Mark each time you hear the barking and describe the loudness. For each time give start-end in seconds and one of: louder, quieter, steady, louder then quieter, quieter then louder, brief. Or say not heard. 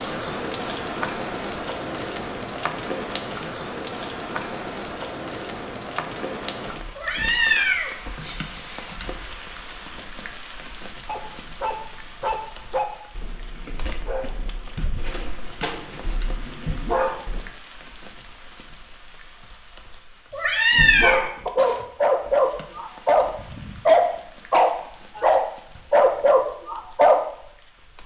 11.1-17.4 quieter then louder
20.7-27.2 steady.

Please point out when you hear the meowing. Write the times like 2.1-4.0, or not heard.
7.0-8.8, 20.3-21.2.